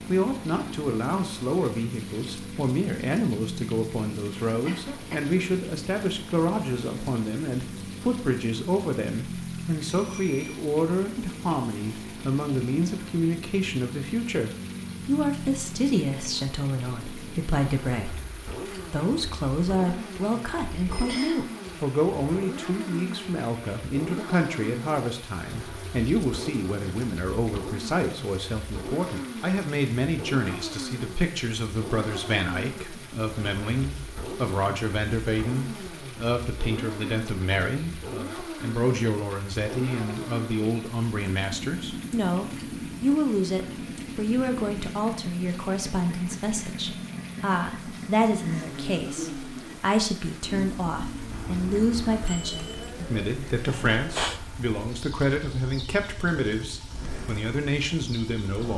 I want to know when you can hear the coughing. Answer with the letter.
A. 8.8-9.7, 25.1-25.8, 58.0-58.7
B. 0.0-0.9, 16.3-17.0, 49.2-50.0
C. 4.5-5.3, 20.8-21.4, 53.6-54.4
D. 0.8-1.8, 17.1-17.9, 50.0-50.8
C.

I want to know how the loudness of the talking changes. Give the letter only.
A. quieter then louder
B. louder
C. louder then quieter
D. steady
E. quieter
D.